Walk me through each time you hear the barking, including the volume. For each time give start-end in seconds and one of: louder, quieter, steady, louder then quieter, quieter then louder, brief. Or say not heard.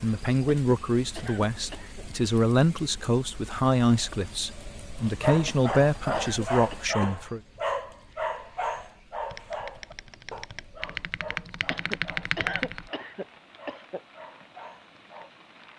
5.0-15.3 quieter.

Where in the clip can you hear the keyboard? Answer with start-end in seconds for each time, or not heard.
9.3-12.9.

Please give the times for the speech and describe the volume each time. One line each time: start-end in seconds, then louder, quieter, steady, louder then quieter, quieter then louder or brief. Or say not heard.
0.0-7.4 steady.